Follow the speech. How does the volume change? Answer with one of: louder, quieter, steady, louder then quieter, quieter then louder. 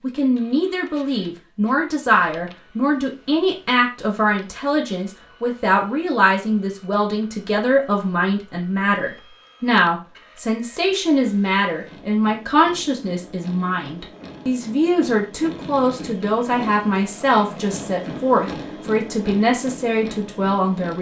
steady.